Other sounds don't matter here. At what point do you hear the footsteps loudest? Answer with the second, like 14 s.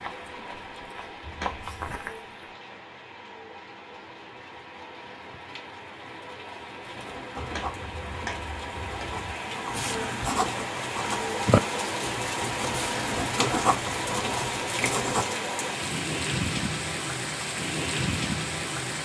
2 s.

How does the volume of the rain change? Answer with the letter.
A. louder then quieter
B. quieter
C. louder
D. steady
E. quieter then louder
C.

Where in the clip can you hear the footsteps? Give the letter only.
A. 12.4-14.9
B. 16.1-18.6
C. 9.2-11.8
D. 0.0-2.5
D.